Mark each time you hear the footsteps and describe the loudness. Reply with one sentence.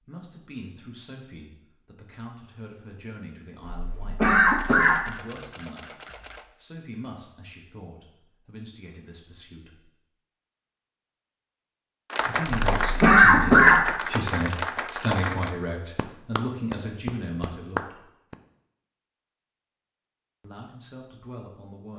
The footsteps can't be heard in this clip.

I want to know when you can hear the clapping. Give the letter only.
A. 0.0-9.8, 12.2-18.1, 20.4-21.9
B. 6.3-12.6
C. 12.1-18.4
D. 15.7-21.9
C.